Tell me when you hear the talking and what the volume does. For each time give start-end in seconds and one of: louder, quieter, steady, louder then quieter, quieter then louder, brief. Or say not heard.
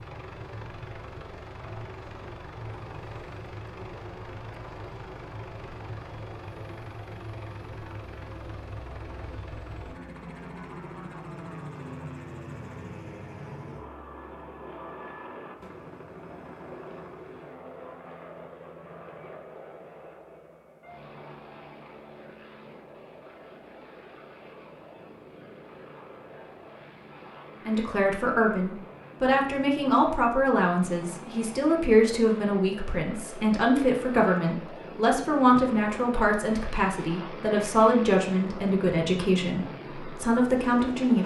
27.6-41.2 steady.